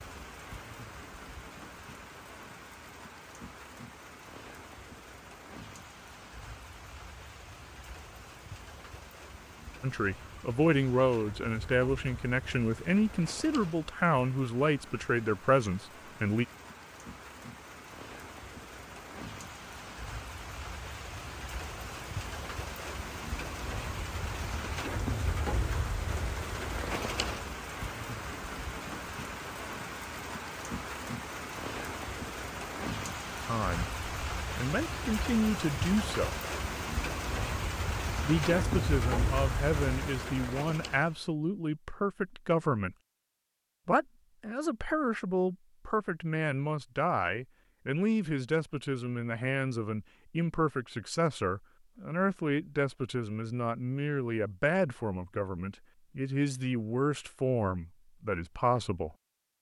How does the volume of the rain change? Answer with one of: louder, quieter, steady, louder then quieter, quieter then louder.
louder.